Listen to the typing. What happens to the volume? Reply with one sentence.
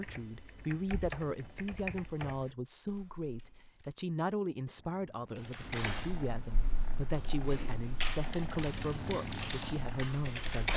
The loudness of the typing goes up.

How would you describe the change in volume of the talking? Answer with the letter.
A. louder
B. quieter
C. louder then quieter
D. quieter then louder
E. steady
E.